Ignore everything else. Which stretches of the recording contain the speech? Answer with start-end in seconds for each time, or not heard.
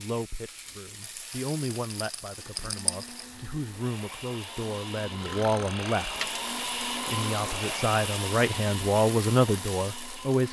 0.0-6.2, 7.0-10.4.